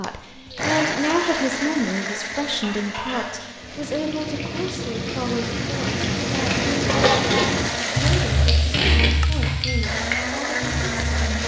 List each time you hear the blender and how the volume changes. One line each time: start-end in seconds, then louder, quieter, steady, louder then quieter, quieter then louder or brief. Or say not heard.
0.0-11.4 quieter then louder.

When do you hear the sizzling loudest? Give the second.
7 s.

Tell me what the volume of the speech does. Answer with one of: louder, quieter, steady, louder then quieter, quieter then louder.
quieter.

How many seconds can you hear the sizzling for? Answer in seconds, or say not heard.
11 s.